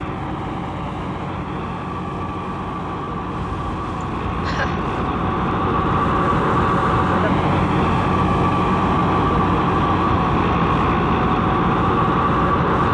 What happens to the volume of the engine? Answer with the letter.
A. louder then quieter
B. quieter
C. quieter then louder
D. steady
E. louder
E.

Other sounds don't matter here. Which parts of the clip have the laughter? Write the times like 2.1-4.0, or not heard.
4.0-4.8.